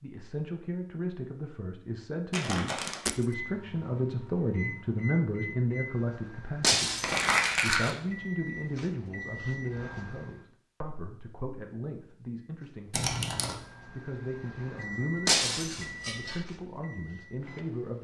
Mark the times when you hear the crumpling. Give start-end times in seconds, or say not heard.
2.3-3.0, 7.0-8.0, 12.9-13.6.